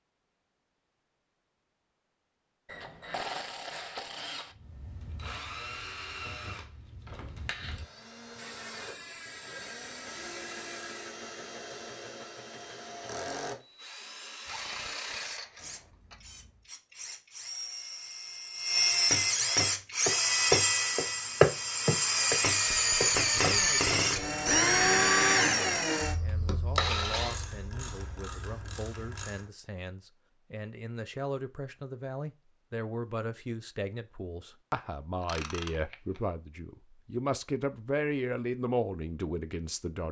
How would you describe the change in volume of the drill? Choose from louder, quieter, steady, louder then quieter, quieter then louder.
louder.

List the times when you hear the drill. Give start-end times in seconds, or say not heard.
4.5-27.4.